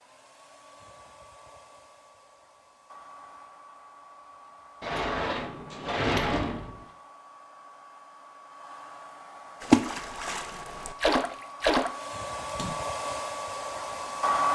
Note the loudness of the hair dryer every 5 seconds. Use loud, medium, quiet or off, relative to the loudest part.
quiet, quiet, loud.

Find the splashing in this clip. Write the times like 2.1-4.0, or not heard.
9.6-12.8.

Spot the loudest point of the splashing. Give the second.
10 s.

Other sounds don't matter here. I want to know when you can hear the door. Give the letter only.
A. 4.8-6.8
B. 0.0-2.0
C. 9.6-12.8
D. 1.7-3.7
A.